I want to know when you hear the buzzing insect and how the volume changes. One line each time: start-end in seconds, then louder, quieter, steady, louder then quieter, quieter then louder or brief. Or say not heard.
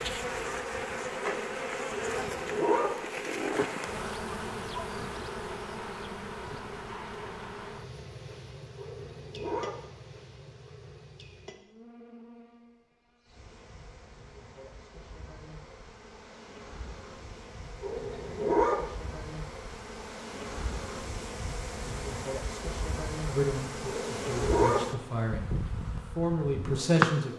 0.0-27.3 quieter then louder.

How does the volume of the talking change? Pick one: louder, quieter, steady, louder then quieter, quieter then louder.
louder.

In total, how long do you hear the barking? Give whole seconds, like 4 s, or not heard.
4 s.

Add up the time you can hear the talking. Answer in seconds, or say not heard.
4 s.